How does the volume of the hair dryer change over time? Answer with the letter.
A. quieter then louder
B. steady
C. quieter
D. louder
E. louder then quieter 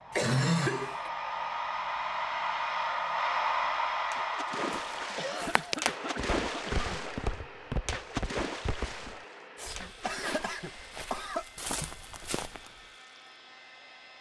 C.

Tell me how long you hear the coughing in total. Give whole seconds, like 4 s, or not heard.
5 s.